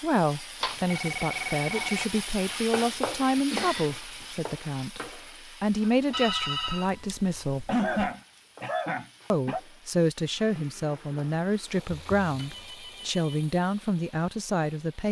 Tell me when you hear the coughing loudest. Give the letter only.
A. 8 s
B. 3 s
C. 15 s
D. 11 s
A.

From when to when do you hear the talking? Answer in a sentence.
The talking can be heard from 0.0 to 7.7 s and from 9.3 to 15.0 s.